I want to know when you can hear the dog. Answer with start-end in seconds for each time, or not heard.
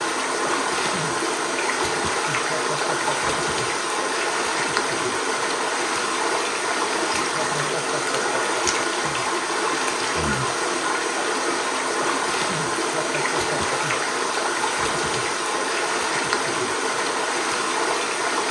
not heard.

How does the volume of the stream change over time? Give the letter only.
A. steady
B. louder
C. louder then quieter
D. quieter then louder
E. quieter
A.